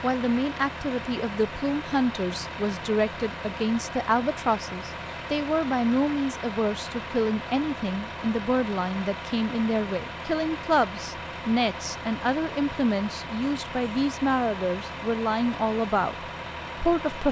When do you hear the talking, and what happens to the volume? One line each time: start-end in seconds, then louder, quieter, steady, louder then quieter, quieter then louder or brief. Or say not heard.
0.0-17.2 steady.